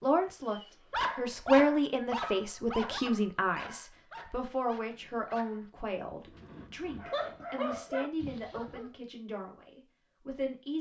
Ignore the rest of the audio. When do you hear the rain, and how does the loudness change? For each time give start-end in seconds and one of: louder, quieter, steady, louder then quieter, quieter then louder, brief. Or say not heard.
not heard.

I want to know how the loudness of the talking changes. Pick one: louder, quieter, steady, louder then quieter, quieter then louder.
quieter.